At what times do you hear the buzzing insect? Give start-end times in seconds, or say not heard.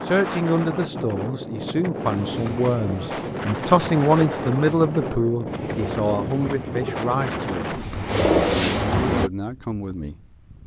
not heard.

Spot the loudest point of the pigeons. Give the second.
8 s.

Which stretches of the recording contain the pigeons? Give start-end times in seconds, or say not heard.
2.0-9.3.